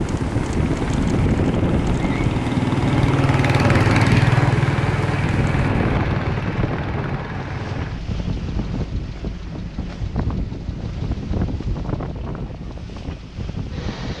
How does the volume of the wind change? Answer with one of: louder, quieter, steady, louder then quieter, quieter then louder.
quieter.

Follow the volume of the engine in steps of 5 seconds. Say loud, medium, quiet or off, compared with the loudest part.
loud, medium, quiet.